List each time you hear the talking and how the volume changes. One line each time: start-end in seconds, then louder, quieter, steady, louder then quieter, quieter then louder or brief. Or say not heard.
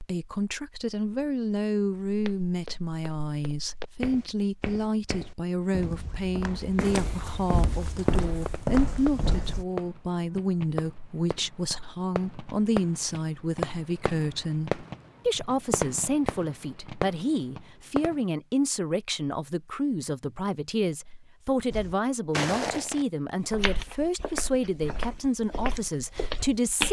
0.0-26.8 steady.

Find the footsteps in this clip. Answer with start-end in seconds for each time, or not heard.
2.0-9.7, 21.7-26.8.